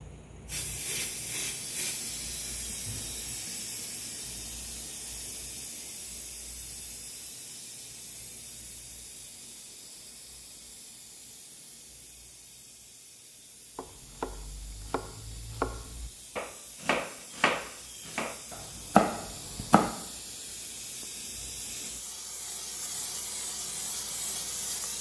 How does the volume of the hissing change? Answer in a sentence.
The loudness of the hissing goes down, then up.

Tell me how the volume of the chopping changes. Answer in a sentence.
The volume of the chopping goes up.